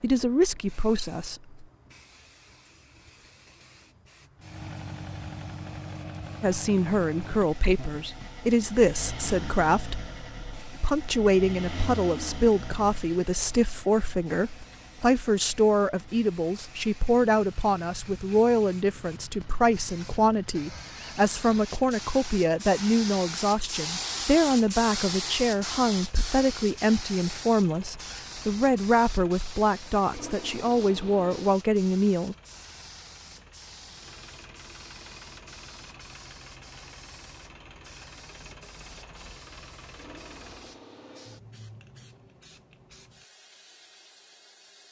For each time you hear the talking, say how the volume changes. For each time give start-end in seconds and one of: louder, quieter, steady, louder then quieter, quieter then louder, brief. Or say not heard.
0.0-1.6 brief
6.4-32.4 steady.